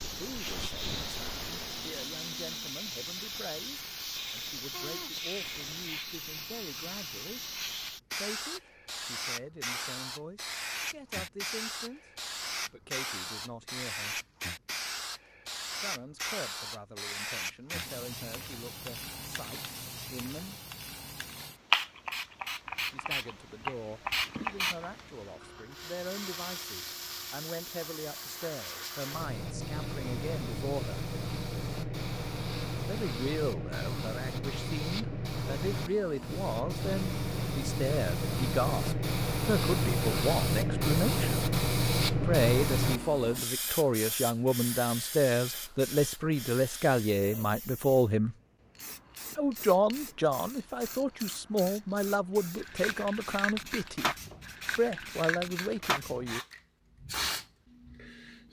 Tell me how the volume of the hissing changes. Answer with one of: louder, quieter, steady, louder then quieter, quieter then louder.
louder then quieter.